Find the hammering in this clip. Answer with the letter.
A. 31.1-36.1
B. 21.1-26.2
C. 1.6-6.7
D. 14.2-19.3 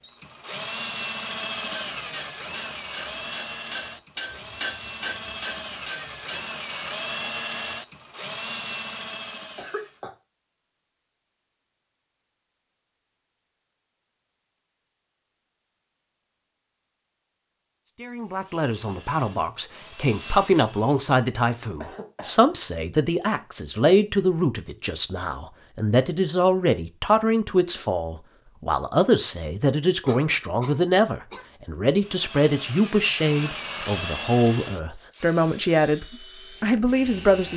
C.